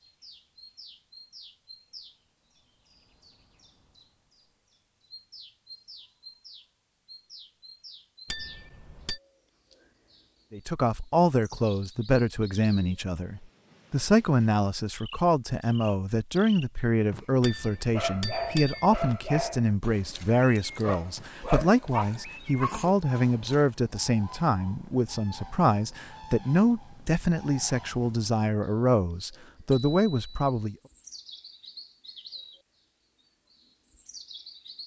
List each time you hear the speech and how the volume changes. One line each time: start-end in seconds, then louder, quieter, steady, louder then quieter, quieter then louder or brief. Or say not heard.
10.5-30.8 steady.